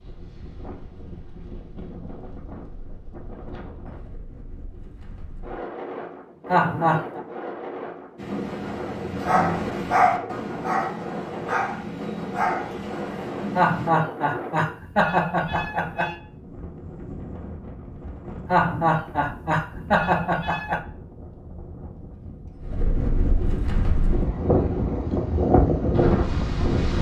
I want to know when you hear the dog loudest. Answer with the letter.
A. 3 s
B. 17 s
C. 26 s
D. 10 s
D.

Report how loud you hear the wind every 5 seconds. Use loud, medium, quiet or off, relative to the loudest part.
quiet, quiet, quiet, quiet, medium, loud.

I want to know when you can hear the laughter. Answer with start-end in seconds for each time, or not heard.
6.5-7.2, 13.6-16.2, 18.4-20.9.